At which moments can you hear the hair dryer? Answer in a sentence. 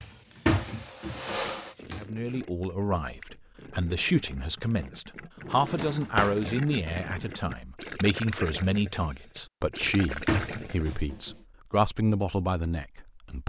You can hear the hair dryer from 0.1 to 1.8 s.